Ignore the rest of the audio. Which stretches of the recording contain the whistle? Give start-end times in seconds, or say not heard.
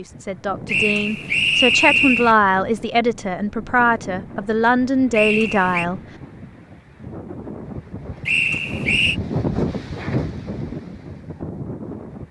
0.7-2.4, 5.1-5.8, 8.2-9.2.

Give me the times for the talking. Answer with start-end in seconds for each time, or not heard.
0.0-6.0.